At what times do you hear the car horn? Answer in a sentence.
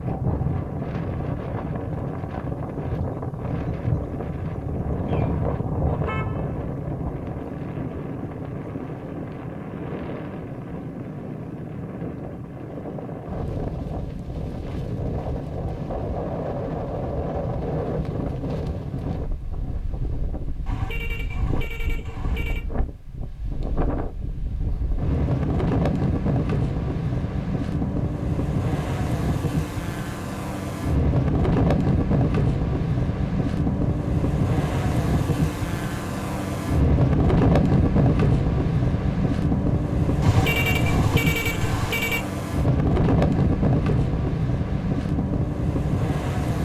The car horn can be heard from 5.0 to 6.5 s, from 20.6 to 22.6 s and from 40.2 to 42.2 s.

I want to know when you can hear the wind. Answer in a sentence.
You can hear the wind from 0.0 to 46.5 s.